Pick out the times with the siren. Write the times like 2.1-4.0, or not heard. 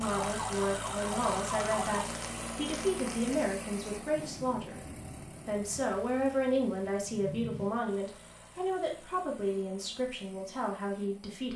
0.0-2.0.